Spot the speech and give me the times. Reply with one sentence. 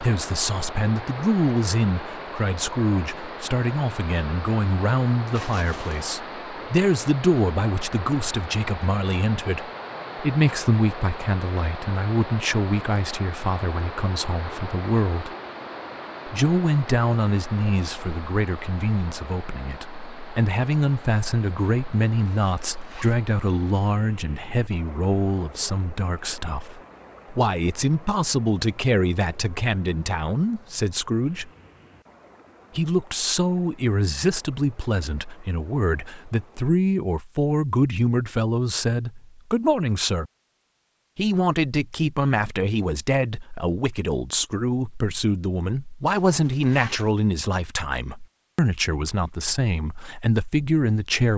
The speech can be heard from 0.0 to 15.3 s, from 16.2 to 31.5 s, from 32.8 to 40.3 s and from 41.1 to 51.3 s.